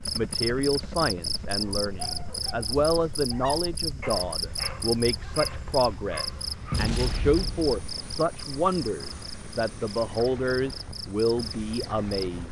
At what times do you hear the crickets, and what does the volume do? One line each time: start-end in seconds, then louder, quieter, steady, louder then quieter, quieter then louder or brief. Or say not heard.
0.0-12.4 quieter.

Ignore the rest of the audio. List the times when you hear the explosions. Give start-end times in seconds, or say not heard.
6.7-7.8.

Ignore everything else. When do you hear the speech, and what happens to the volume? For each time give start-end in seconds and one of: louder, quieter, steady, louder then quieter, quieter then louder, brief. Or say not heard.
0.1-12.4 steady.